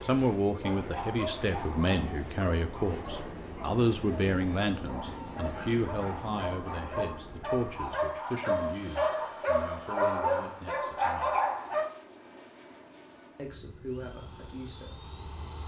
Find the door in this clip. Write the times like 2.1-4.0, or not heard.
not heard.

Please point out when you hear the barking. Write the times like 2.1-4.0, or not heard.
0.6-11.9.